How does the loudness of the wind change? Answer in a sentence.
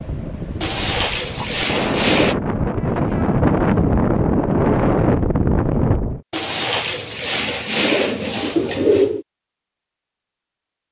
The loudness of the wind goes up.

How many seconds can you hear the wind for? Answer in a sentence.
You can hear the wind for 6 seconds altogether.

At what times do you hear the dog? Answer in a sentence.
You can't hear the dog here.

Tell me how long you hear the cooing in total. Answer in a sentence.
You can hear the cooing for 5 seconds altogether.